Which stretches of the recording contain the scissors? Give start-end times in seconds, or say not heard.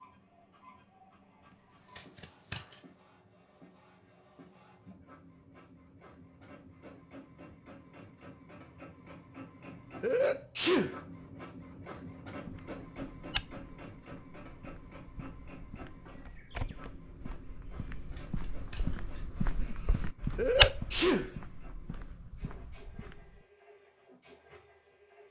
1.4-2.8, 17.6-19.4.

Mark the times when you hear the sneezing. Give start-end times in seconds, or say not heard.
10.0-11.0, 20.4-21.4.